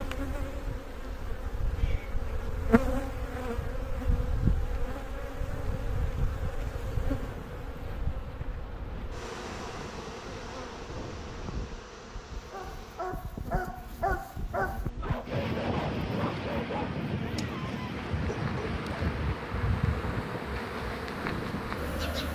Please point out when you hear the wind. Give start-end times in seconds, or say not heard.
7.1-22.3.